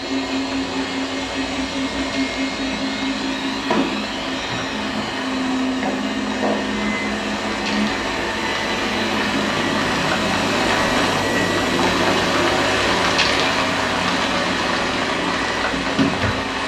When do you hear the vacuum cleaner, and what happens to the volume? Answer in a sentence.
The vacuum cleaner can be heard from 0.0 to 16.6 s, at a steady volume.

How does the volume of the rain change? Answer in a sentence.
The loudness of the rain goes up.